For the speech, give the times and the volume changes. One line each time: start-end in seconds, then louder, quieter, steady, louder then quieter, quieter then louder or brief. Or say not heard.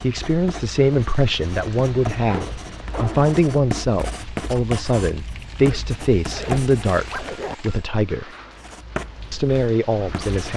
0.0-8.3 steady
9.3-10.5 brief.